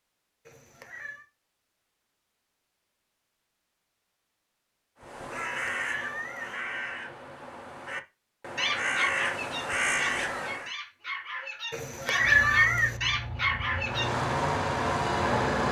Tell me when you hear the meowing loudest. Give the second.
12 s.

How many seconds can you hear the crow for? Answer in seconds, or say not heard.
6 s.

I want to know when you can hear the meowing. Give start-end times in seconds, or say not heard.
0.5-1.2, 5.3-6.5, 11.7-13.0.